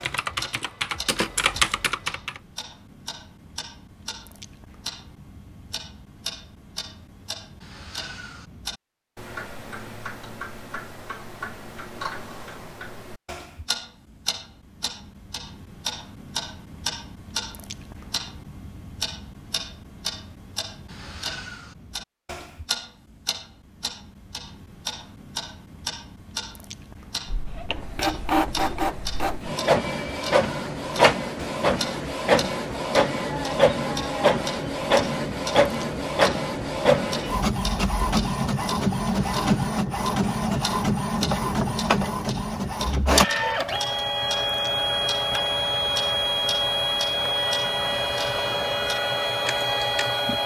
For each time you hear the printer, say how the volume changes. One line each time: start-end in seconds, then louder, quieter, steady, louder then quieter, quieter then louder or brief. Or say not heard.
27.2-50.4 steady.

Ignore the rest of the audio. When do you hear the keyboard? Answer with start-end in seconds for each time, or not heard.
0.0-2.4.